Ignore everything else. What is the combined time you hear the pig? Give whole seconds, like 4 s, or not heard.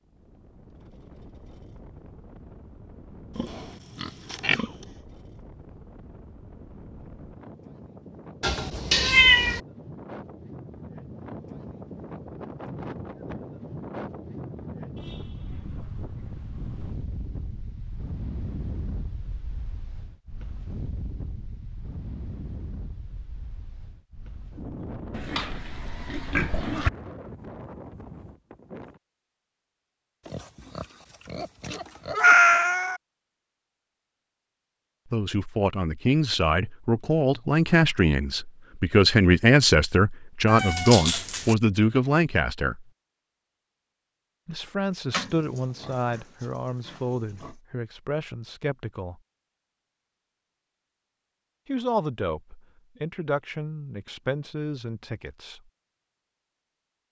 8 s.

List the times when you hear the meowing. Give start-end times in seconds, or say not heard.
8.4-9.6, 32.2-33.0, 40.5-41.5.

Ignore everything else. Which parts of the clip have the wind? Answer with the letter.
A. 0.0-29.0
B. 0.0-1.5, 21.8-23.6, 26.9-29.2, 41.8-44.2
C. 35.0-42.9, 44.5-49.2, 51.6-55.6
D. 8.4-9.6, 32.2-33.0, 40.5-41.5
A.